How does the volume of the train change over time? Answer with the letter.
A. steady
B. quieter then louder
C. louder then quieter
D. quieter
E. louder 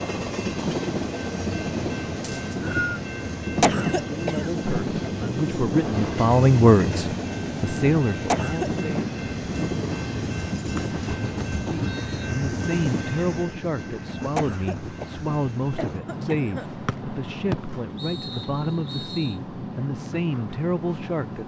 D.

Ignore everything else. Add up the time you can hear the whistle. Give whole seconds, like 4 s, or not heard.
5 s.